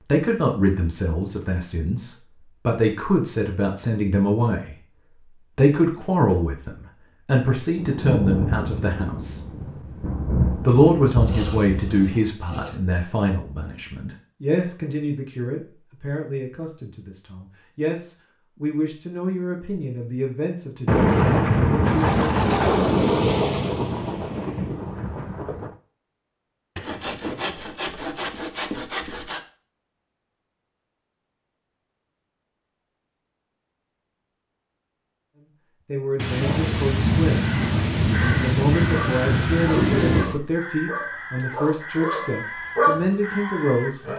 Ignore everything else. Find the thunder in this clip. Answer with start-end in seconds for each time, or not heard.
7.8-12.0, 20.9-25.8, 36.1-40.4.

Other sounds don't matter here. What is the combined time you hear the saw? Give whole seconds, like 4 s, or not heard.
4 s.